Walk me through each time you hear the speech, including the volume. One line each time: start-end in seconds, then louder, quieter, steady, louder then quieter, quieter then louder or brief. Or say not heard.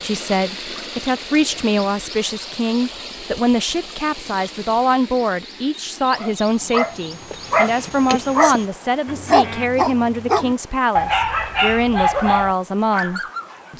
0.0-13.7 steady.